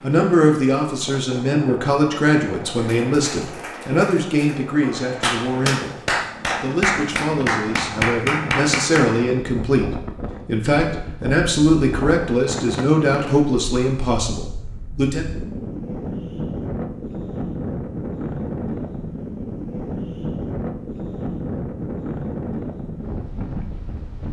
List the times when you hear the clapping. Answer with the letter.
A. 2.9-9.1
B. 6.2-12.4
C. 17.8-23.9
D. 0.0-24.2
A.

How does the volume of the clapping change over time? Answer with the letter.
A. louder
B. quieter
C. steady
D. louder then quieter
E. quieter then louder
A.